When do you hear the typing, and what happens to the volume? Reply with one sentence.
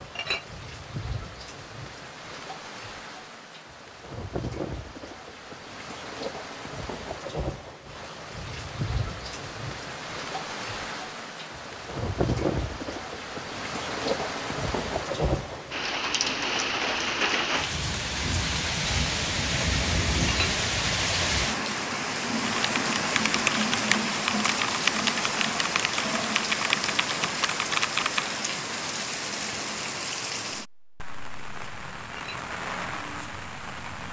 The typing can be heard from 22.4 to 28.3 s, at a steady volume.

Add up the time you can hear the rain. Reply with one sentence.
The rain can be heard for 34 seconds in total.